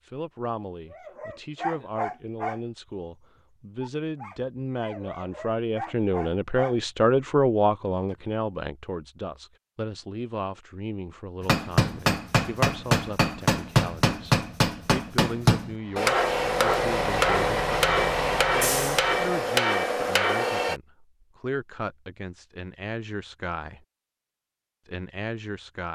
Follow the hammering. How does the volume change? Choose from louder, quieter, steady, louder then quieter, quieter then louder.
steady.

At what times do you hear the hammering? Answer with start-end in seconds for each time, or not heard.
11.4-20.8.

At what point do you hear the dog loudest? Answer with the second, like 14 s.
2 s.